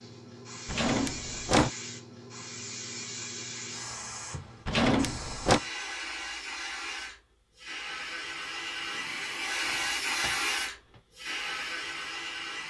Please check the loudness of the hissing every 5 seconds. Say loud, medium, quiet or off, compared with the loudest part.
medium, loud, loud.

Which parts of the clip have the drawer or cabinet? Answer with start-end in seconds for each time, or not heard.
0.7-1.7, 4.7-5.6, 8.8-11.0.